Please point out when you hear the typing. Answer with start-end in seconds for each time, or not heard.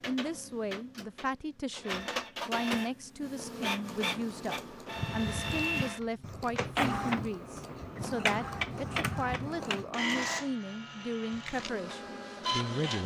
3.4-10.2.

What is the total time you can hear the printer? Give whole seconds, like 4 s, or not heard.
13 s.